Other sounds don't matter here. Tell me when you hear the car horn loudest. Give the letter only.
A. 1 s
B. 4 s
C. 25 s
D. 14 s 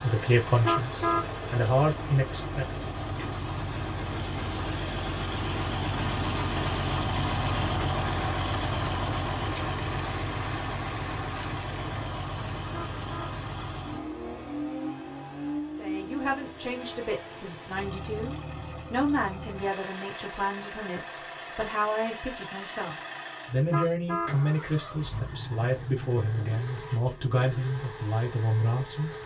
A.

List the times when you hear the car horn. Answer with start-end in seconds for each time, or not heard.
0.5-1.2, 12.6-13.3, 23.5-24.4.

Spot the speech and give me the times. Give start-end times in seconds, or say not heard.
0.0-2.7, 15.8-29.1.